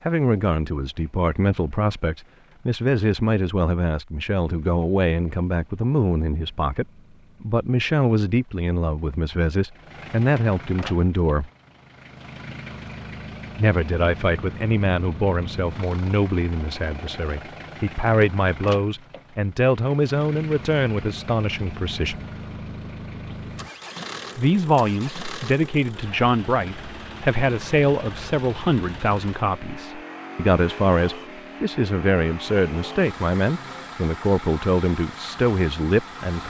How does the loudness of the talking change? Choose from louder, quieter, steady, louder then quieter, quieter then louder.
steady.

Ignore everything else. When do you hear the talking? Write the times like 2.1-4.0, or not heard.
0.1-11.5, 13.6-22.2, 24.4-36.4.